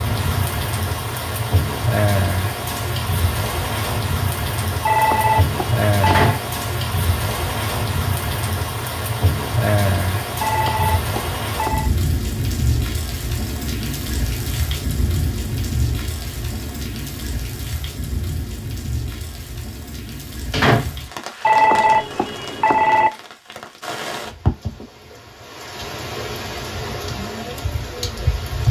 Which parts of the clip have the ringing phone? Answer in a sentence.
You can hear the ringing phone from 4.8 to 6.3 s, from 10.4 to 11.9 s and from 21.4 to 23.1 s.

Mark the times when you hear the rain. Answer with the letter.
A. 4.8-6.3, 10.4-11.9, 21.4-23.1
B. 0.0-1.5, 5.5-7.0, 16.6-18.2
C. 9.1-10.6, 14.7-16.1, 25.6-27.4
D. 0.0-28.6
D.